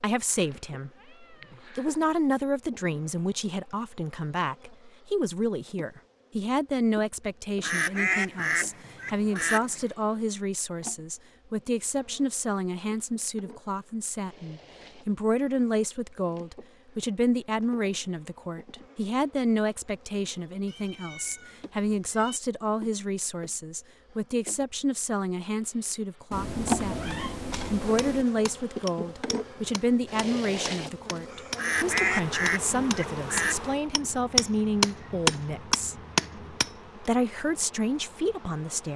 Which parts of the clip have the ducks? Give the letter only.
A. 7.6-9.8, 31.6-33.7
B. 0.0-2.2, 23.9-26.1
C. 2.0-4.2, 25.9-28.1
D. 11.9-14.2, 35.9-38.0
A.